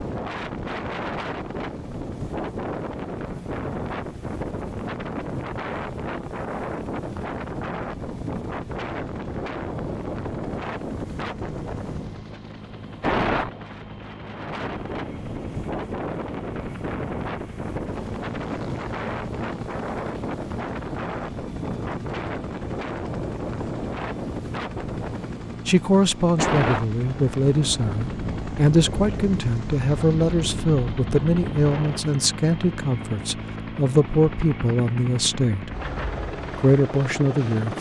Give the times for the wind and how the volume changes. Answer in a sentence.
The wind can be heard from 0.0 to 32.1 s, at a steady volume.